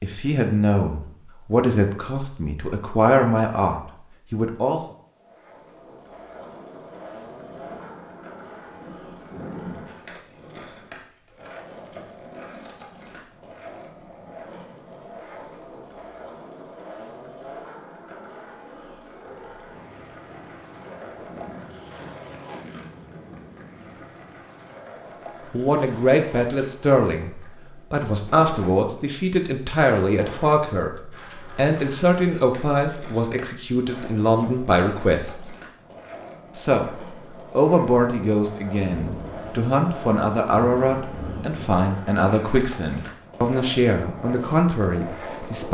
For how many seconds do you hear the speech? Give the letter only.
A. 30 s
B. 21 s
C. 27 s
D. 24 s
D.